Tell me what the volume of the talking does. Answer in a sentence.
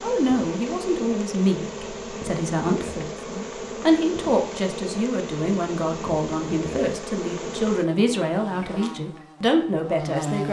The loudness of the talking stays about the same.